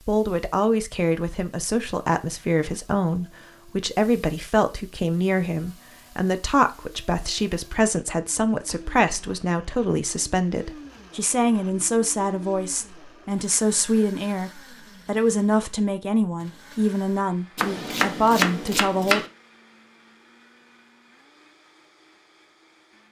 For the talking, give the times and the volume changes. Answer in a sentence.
You can hear the talking from 0.1 to 19.2 s, at a steady volume.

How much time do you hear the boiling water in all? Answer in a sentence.
The boiling water can't be heard in this clip.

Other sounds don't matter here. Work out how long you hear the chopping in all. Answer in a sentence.
The chopping can be heard for 2 seconds in total.